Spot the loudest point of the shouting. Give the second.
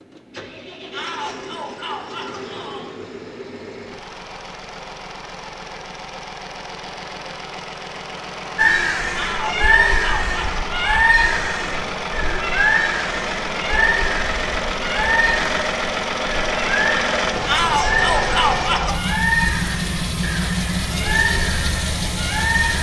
18 s.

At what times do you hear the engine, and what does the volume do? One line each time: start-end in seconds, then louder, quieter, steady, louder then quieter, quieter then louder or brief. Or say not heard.
0.0-22.7 louder.